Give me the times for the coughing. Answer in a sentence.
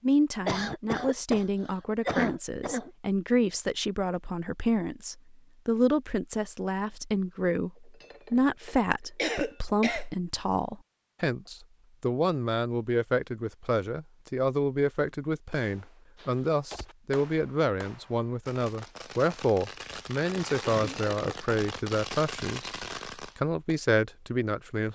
The coughing can be heard from 0.5 to 2.9 s, from 9.2 to 10.1 s and from 20.7 to 21.4 s.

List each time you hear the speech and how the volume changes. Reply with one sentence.
The speech can be heard from 0.0 to 22.7 s, at a steady volume; and briefly from 23.4 to 24.9 s.